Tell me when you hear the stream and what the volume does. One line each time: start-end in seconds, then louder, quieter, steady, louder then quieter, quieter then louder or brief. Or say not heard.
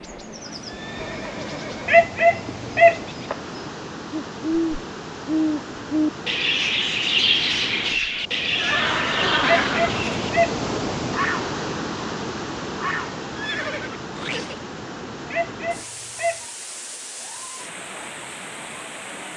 0.1-19.3 louder then quieter.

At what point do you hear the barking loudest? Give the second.
2 s.